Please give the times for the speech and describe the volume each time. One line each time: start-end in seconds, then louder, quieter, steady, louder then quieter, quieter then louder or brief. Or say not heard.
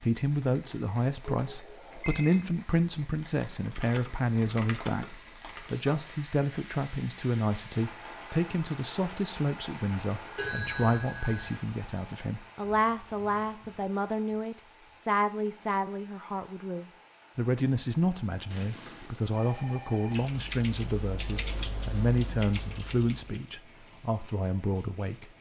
0.0-25.2 steady.